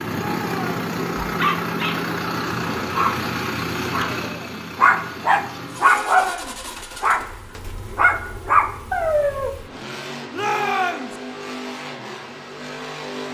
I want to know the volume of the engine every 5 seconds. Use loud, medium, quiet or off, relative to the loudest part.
loud, medium, medium.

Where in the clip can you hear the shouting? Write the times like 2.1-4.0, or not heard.
0.2-0.8, 5.8-6.6, 10.3-11.2.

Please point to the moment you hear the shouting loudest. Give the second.
11 s.